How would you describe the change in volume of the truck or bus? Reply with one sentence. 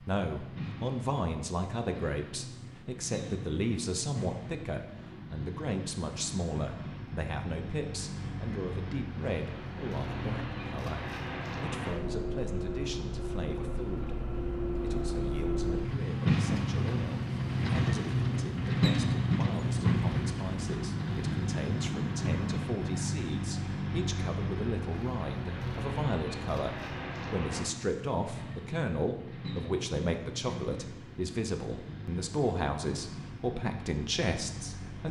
The loudness of the truck or bus goes up, then down.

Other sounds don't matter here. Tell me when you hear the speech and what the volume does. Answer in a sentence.
The speech can be heard from 0.0 to 35.0 s, getting quieter then louder.